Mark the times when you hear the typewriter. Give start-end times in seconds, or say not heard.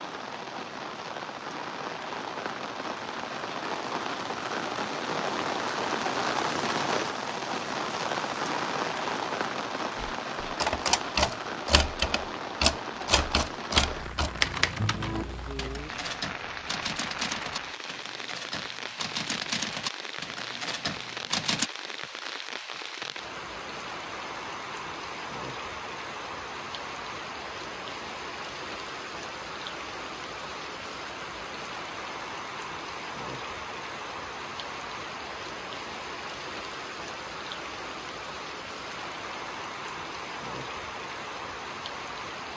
9.9-21.7.